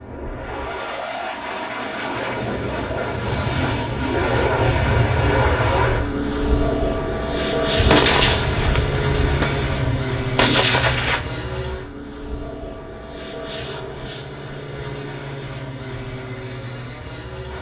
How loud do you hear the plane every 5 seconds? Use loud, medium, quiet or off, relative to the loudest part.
loud, loud, medium, medium.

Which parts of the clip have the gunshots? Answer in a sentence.
You can hear the gunshots from 7.8 to 11.2 s.